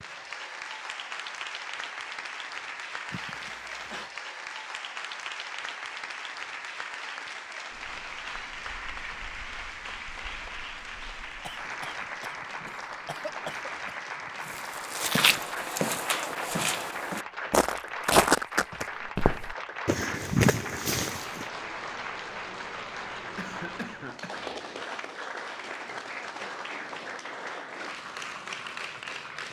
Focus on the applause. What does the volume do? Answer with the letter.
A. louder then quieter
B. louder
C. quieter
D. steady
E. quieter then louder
D.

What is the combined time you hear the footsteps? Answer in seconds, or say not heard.
7 s.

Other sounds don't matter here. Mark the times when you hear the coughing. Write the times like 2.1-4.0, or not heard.
3.1-4.1, 11.4-13.9, 23.4-24.3.